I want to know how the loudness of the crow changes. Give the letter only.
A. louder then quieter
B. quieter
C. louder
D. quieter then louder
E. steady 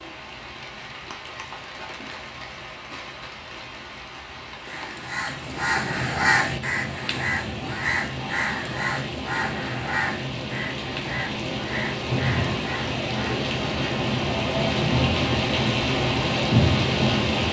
B.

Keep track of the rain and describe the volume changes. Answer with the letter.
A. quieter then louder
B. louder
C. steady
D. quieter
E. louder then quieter
B.